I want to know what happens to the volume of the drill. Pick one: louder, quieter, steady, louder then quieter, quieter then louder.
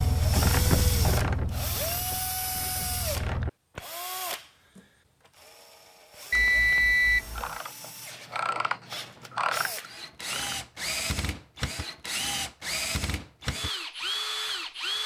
quieter then louder.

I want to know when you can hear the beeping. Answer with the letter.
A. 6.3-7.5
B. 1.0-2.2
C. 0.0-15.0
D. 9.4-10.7
A.